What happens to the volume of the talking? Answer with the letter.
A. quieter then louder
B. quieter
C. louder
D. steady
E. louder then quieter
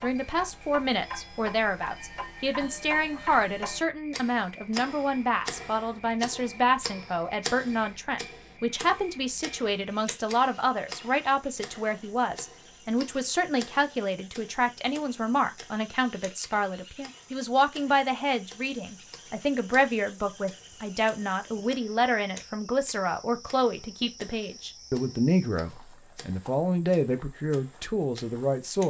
D.